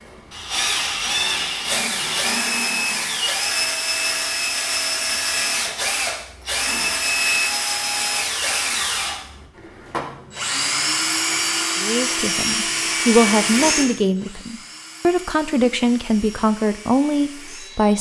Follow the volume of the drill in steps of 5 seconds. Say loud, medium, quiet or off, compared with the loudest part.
loud, loud, loud, quiet.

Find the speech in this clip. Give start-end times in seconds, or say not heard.
11.8-17.9.